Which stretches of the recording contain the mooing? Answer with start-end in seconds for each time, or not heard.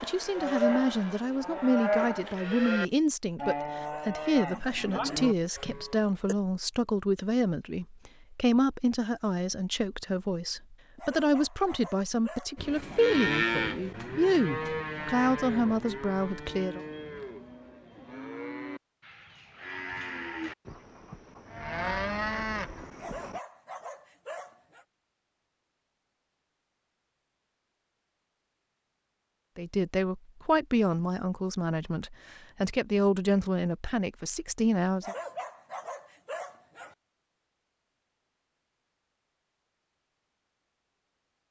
0.0-6.3, 12.6-23.4.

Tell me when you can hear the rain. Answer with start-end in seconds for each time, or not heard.
not heard.